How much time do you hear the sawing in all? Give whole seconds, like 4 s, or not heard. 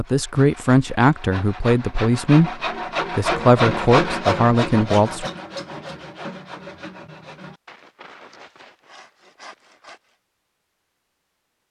10 s.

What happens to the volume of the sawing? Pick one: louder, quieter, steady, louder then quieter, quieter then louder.
louder then quieter.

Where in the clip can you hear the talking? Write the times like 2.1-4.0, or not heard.
0.0-5.3.